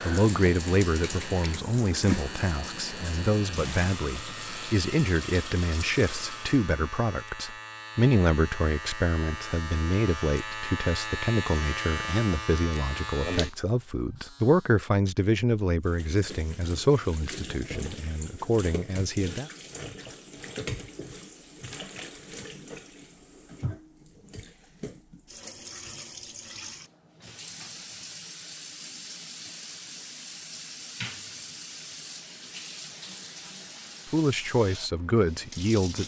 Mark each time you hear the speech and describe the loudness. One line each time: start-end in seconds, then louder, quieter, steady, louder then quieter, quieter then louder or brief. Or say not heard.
0.0-19.5 steady
34.0-36.0 brief.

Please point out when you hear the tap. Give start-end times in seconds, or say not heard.
0.0-6.7, 15.8-36.0.